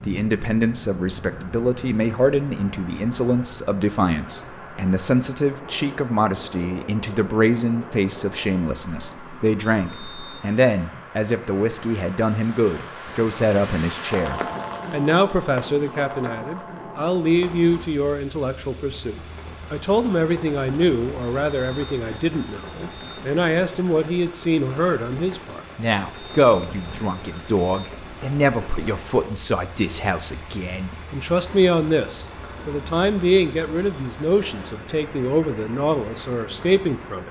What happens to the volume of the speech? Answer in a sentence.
The volume of the speech stays about the same.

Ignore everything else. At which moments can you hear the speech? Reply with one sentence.
You can hear the speech from 0.1 to 37.2 s.